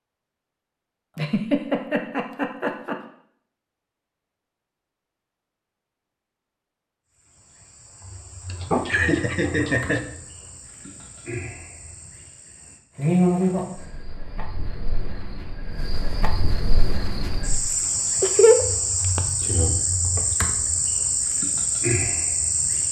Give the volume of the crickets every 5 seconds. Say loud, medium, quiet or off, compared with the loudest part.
off, quiet, loud, loud, loud.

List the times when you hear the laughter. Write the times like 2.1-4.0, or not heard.
1.1-3.0, 8.4-10.1, 18.2-19.2.